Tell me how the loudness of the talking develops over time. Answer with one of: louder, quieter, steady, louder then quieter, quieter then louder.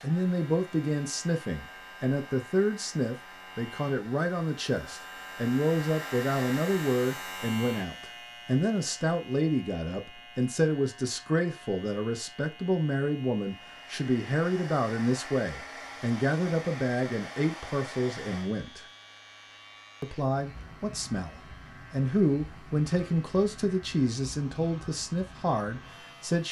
steady.